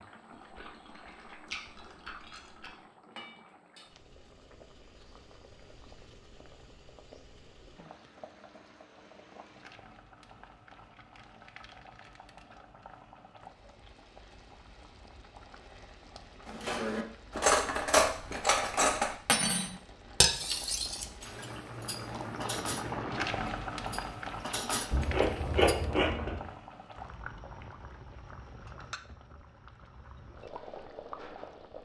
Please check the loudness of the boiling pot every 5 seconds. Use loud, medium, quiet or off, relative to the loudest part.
quiet, quiet, quiet, quiet, loud, medium, medium.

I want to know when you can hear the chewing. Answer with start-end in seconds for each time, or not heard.
0.3-2.8, 24.9-26.5.